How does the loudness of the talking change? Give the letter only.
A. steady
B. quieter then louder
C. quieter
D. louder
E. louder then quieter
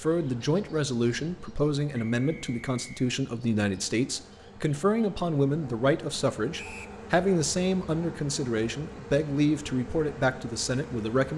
A.